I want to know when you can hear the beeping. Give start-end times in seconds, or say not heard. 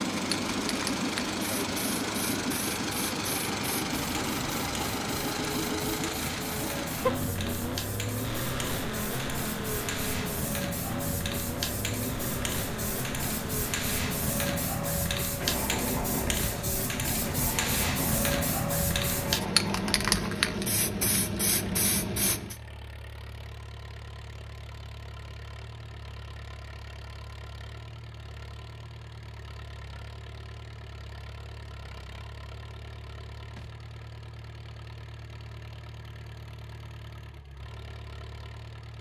not heard.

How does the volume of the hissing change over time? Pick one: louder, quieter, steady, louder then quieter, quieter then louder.
louder.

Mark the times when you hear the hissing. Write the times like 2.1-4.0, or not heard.
0.1-22.6.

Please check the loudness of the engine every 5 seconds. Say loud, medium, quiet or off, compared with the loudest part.
loud, loud, medium, medium, quiet, quiet, quiet, quiet.